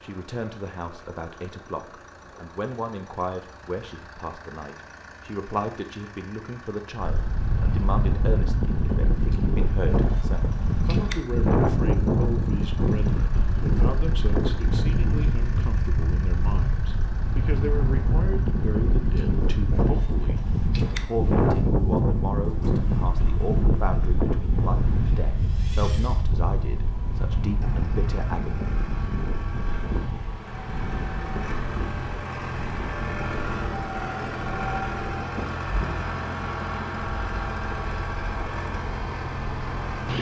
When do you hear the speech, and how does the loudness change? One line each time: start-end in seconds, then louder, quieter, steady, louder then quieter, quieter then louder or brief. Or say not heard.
0.0-28.7 steady.